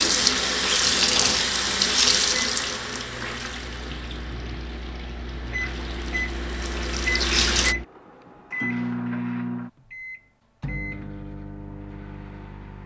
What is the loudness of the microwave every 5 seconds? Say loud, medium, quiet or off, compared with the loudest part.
medium, loud, medium.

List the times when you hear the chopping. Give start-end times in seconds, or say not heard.
not heard.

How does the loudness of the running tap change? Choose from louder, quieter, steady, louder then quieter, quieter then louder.
quieter then louder.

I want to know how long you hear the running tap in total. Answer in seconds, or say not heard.
8 s.